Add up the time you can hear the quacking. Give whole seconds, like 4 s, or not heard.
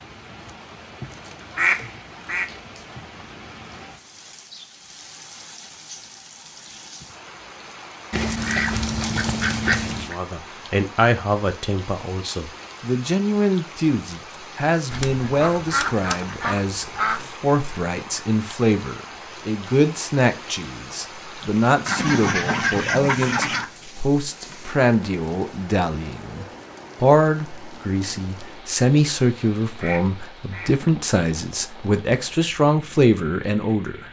8 s.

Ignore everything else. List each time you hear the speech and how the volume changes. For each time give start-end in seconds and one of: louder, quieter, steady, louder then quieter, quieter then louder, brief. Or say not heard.
9.9-34.0 steady.